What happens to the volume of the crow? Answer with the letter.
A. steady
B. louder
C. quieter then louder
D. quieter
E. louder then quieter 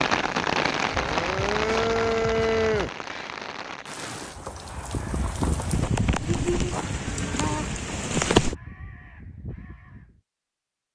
D.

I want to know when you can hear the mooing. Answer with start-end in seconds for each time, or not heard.
0.9-2.9, 6.0-7.7.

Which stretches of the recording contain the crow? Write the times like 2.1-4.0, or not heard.
4.3-10.2.